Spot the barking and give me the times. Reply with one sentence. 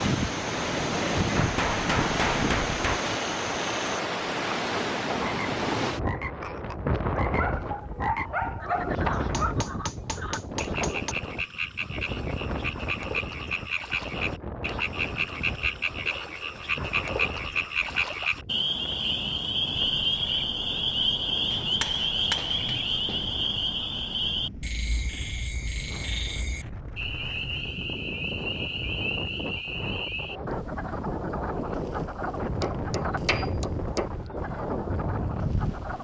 The barking can be heard from 7.1 to 9.6 s.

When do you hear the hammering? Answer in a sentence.
The hammering can be heard from 1.4 to 3.0 s, from 9.3 to 11.2 s, from 21.5 to 23.4 s and from 32.6 to 34.1 s.